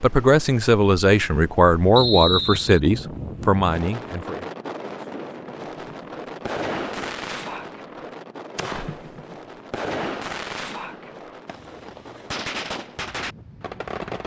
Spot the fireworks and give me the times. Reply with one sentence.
The fireworks can be heard from 5.8 to 14.2 s.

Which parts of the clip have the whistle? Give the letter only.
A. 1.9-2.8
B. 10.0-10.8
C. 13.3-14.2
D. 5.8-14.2
A.